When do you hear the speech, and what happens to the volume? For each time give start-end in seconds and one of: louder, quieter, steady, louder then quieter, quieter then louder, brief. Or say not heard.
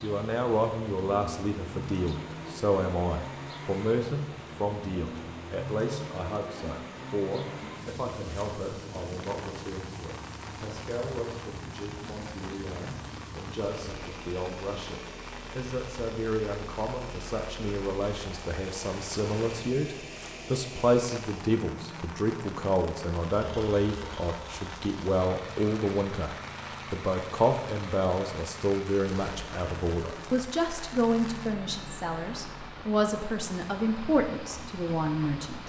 0.0-35.6 quieter then louder.